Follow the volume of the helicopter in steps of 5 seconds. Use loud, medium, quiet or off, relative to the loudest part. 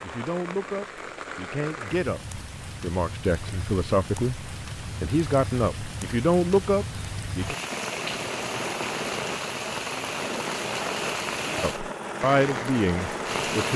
off, loud, loud.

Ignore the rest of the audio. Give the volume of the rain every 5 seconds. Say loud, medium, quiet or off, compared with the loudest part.
medium, loud, loud.